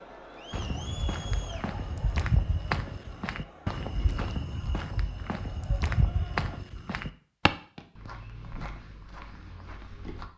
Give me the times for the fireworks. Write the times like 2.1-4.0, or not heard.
not heard.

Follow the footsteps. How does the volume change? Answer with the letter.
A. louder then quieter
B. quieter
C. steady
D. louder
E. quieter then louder
B.